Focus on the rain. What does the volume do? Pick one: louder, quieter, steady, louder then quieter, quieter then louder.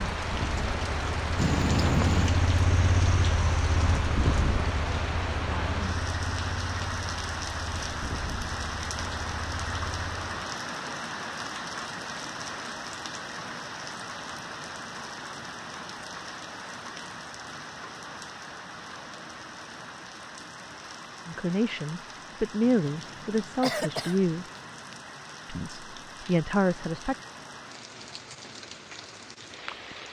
quieter.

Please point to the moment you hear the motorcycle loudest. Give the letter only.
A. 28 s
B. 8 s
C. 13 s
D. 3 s
D.